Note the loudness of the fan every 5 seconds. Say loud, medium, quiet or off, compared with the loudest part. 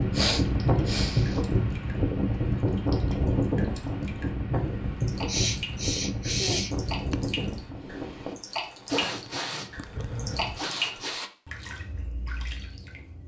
loud, medium, off.